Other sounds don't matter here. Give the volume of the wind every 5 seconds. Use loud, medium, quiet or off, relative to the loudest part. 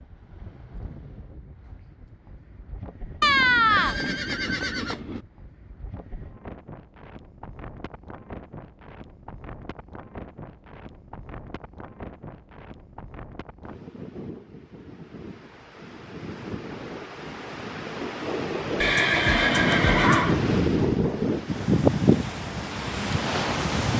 quiet, quiet, quiet, medium, loud.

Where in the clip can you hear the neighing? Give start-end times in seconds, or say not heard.
3.2-5.2, 18.8-20.4.